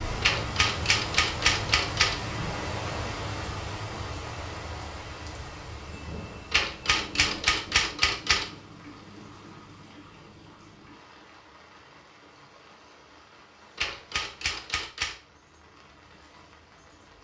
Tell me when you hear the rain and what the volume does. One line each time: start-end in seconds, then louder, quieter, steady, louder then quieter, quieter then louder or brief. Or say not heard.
0.0-17.1 quieter.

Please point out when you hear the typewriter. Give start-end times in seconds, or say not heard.
0.2-2.2, 6.5-8.4, 13.8-15.2.